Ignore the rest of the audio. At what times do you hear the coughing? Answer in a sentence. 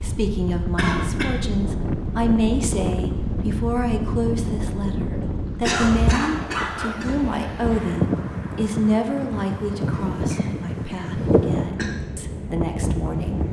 The coughing can be heard from 0.8 to 1.3 s, from 5.5 to 7.2 s and from 9.9 to 11.9 s.